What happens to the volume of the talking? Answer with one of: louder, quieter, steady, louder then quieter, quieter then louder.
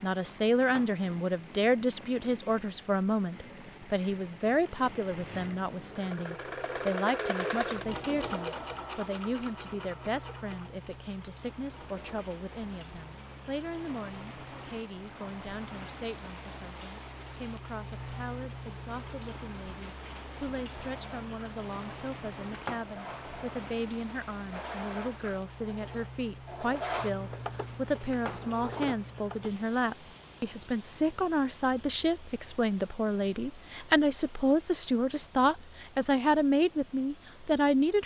quieter then louder.